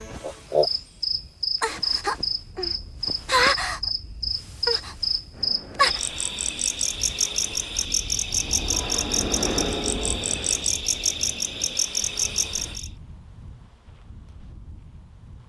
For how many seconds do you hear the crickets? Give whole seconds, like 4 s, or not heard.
13 s.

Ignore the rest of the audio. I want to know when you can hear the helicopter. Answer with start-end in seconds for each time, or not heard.
5.3-12.8.